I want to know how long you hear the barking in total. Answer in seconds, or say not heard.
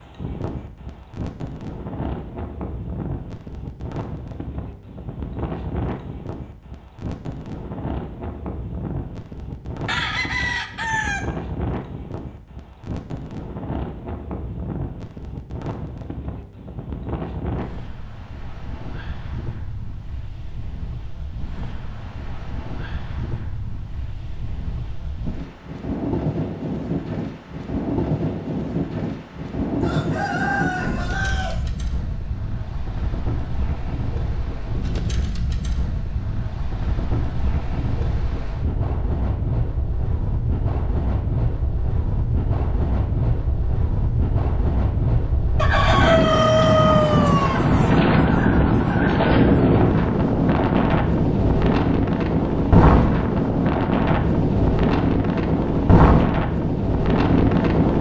not heard.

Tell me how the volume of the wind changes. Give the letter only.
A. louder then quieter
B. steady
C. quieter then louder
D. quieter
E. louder
E.